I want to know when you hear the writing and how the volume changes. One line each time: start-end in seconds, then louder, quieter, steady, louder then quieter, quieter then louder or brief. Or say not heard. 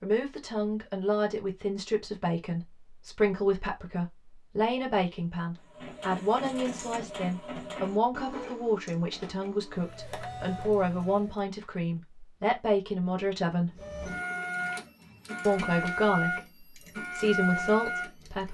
not heard.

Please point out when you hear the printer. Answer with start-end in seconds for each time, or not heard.
5.5-11.4, 13.7-18.4.